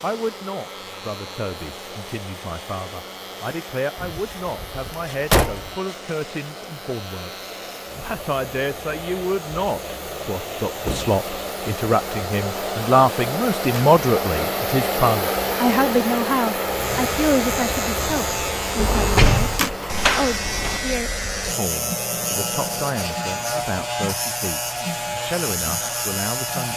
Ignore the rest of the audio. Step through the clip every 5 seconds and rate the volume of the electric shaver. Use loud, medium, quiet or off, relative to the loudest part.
quiet, quiet, quiet, loud, loud, loud.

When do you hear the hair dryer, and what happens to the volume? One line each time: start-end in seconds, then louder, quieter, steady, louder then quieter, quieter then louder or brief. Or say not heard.
0.0-26.7 louder then quieter.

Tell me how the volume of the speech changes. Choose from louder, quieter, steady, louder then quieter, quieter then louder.
louder then quieter.